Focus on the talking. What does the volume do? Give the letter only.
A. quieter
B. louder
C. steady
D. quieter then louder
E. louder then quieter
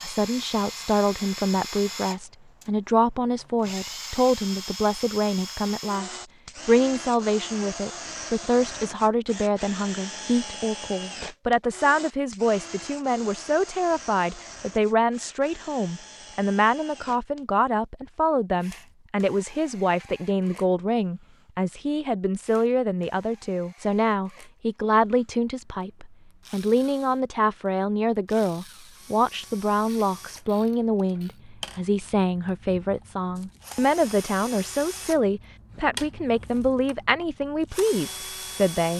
C.